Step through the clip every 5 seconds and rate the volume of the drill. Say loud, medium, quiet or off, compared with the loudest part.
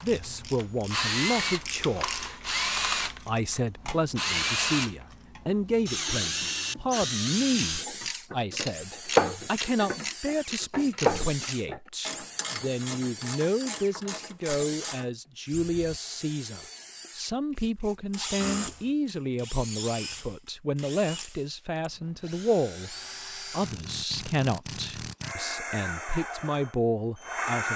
loud, loud, medium, medium, medium, loud.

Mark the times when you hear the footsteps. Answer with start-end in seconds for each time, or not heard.
not heard.